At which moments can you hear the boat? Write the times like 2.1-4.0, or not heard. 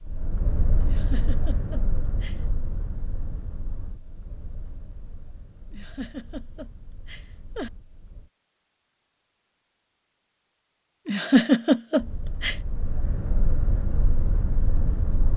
0.0-8.3, 11.9-15.3.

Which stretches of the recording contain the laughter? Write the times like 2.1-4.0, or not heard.
0.8-2.4, 5.7-7.7, 11.1-12.6.